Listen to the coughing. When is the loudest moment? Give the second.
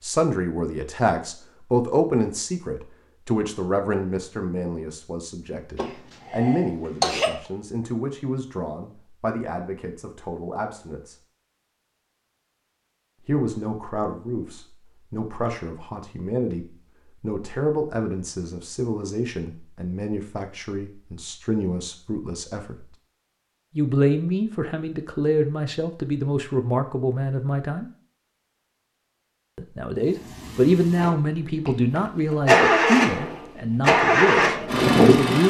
7 s.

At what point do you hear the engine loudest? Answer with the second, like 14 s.
35 s.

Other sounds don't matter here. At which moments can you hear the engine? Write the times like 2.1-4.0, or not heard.
30.0-35.4.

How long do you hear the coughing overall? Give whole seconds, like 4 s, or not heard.
2 s.